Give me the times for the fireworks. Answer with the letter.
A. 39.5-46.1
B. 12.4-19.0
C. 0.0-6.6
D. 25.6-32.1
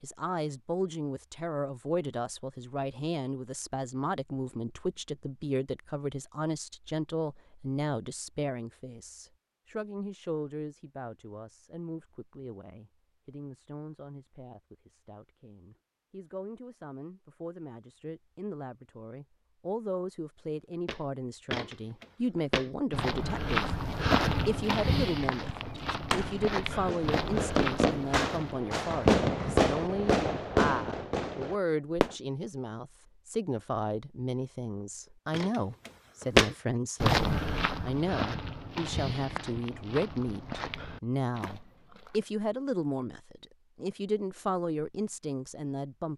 D.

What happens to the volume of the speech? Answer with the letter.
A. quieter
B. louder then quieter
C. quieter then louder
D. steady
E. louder
C.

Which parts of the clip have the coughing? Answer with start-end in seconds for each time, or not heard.
not heard.